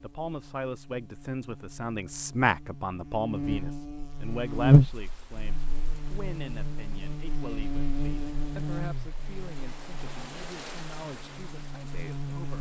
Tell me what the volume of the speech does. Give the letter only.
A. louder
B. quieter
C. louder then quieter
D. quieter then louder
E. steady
B.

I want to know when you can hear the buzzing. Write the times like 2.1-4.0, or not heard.
0.0-12.5.